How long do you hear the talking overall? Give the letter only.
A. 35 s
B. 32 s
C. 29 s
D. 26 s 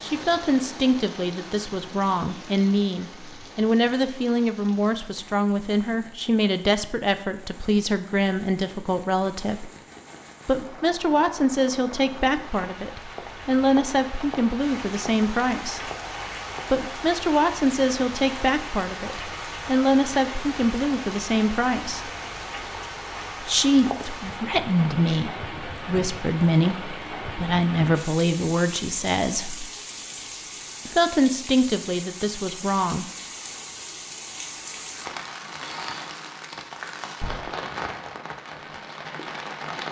C.